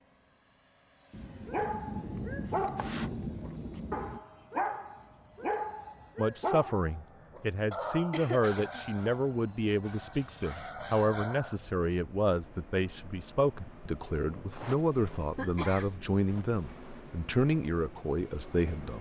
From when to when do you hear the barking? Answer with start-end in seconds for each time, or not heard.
1.4-11.6.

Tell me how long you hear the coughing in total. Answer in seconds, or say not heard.
3 s.